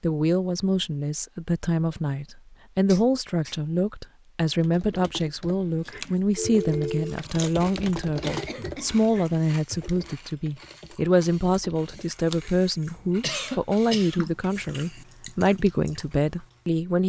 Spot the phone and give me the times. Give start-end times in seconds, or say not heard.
6.3-7.2.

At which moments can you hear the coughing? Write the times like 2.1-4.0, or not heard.
2.9-3.6, 8.2-8.9, 13.2-14.3.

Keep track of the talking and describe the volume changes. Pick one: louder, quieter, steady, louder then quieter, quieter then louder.
steady.